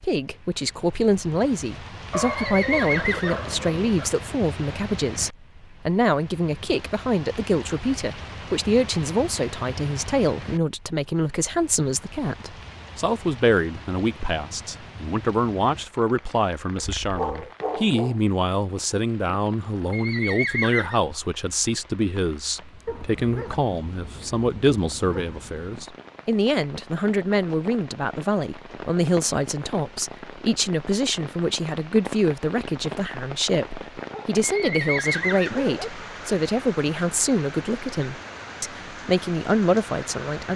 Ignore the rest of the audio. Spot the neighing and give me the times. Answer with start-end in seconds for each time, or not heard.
2.2-3.4, 19.9-21.0, 34.5-35.6.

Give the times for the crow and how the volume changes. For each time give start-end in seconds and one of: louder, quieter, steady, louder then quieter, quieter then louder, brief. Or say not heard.
not heard.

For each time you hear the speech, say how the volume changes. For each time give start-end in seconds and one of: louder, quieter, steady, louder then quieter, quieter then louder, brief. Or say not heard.
0.0-40.5 steady.